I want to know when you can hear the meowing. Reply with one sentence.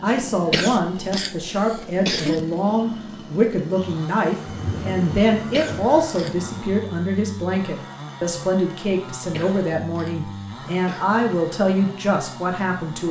You can't hear the meowing here.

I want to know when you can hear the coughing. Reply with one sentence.
The coughing can be heard from 0.5 to 2.5 s, from 5.5 to 6.3 s and from 9.3 to 11.1 s.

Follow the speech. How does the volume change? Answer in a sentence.
The loudness of the speech stays about the same.